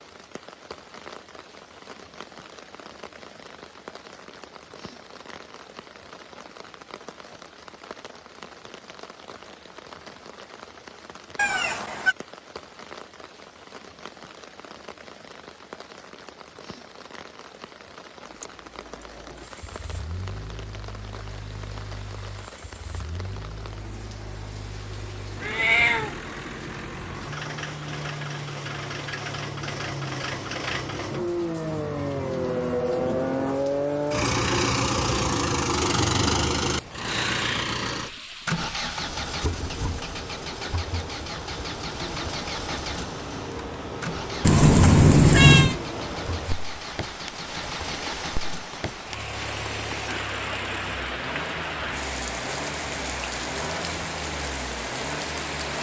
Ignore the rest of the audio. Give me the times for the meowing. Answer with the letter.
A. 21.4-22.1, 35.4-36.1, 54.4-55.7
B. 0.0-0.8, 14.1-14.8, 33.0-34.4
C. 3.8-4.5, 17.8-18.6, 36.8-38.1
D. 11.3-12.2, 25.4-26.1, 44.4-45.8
D.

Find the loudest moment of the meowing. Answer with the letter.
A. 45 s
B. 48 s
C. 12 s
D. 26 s
A.